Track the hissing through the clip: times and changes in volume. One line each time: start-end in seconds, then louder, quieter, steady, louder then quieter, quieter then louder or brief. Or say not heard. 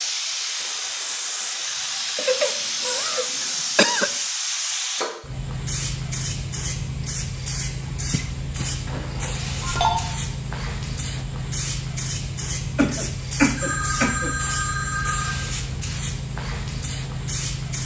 0.0-17.8 steady.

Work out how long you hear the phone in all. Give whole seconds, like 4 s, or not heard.
4 s.